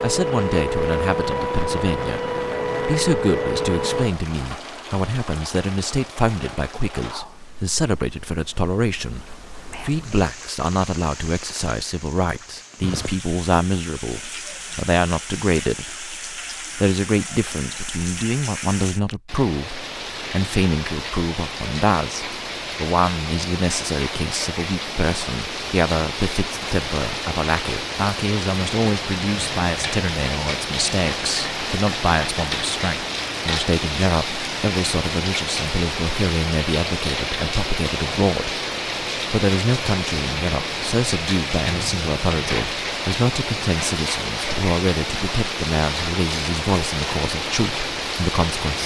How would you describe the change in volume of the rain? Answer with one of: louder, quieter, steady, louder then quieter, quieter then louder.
louder.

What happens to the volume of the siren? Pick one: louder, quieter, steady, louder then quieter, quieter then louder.
steady.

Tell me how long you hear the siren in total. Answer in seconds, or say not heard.
4 s.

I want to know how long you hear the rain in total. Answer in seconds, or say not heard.
49 s.